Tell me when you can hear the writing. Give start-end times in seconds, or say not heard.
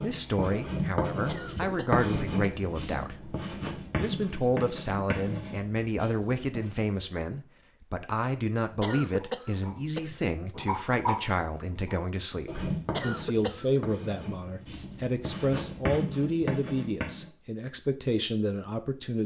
0.0-7.0, 8.8-17.2.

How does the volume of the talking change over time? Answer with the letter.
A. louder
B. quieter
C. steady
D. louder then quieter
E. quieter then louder
C.